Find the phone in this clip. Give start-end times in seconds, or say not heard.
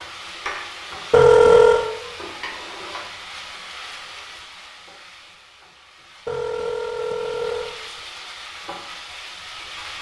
1.1-1.9, 6.2-7.8.